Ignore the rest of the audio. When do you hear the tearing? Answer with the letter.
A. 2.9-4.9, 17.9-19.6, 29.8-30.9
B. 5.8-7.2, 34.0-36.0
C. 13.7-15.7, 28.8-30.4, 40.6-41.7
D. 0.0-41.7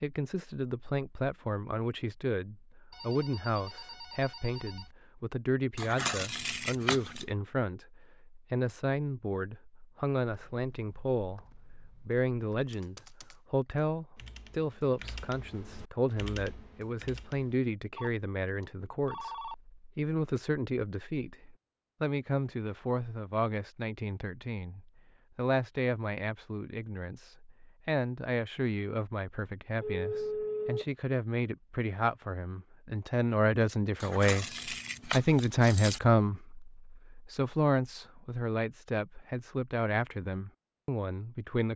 B.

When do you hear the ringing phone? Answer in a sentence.
You can hear the ringing phone from 2.9 to 4.9 s, from 17.9 to 19.6 s and from 29.8 to 30.9 s.